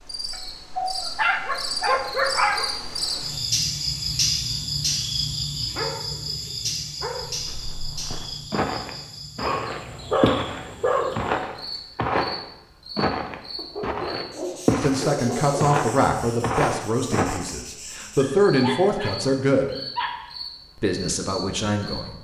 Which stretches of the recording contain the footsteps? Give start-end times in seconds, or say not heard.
7.2-17.5.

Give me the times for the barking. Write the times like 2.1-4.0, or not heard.
0.3-2.7, 5.7-7.3, 9.4-11.3, 13.6-15.6, 18.1-20.1.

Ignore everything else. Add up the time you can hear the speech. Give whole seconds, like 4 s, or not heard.
6 s.